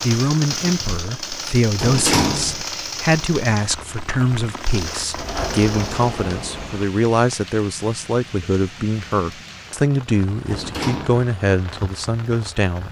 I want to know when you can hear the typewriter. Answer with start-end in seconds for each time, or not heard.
not heard.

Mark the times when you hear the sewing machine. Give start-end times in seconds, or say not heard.
0.0-6.1.